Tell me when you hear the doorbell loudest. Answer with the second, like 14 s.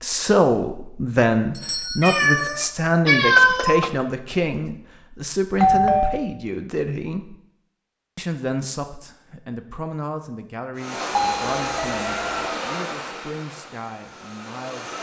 6 s.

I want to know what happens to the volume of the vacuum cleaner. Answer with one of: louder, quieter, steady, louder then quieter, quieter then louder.
quieter.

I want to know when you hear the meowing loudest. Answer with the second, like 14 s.
3 s.